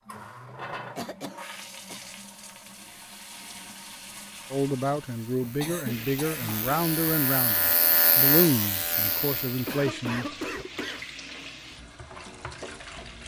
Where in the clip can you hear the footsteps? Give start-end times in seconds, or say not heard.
not heard.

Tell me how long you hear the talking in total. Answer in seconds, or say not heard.
6 s.